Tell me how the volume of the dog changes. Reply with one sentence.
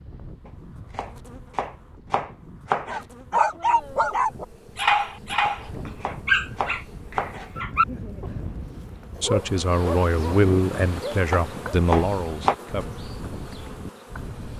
The loudness of the dog goes down.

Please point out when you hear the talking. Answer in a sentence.
The talking can be heard from 9.2 to 12.8 s.